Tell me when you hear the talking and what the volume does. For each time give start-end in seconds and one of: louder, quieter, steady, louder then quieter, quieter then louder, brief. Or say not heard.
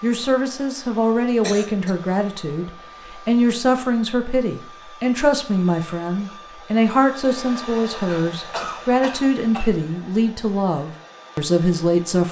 0.0-12.2 steady.